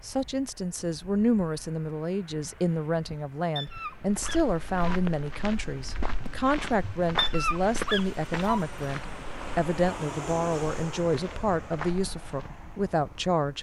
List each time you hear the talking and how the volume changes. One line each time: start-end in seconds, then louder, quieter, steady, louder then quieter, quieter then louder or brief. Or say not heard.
0.0-13.5 steady.